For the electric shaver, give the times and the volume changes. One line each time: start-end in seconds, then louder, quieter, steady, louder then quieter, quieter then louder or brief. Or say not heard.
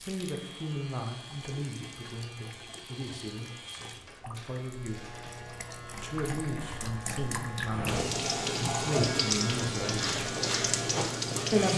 0.1-11.7 louder.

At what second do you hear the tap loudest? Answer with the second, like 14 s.
9 s.